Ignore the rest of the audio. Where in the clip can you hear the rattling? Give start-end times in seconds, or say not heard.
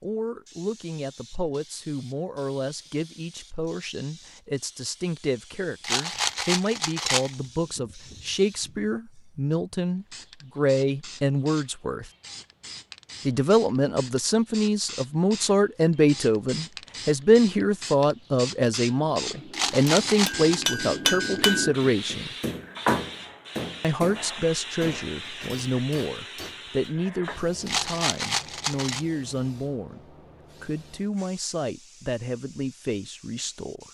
5.8-7.3, 19.5-20.7, 27.6-29.1.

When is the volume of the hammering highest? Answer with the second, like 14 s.
21 s.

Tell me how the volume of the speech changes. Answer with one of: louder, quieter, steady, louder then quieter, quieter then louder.
louder then quieter.